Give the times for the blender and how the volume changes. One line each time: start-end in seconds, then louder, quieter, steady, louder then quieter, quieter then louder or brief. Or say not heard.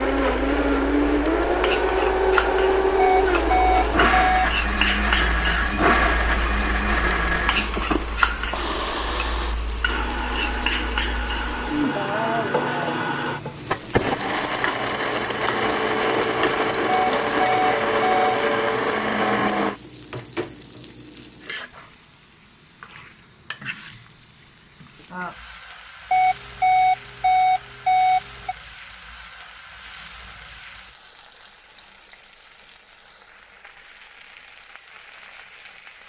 0.0-19.8 quieter then louder.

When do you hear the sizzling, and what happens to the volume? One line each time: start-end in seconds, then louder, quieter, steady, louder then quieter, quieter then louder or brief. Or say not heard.
0.0-36.0 quieter.